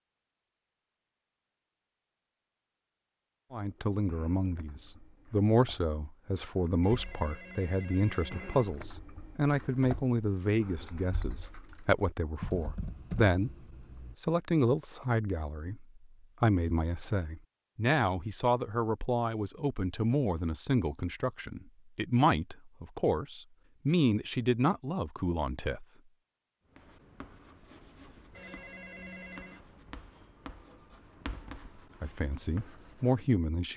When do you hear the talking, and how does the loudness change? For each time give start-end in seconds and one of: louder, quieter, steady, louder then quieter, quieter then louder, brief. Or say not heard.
3.5-25.9 steady
32.0-33.7 brief.